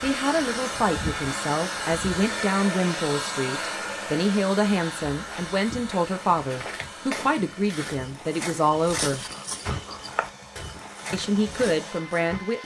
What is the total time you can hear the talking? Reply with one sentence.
The talking can be heard for 11 seconds in total.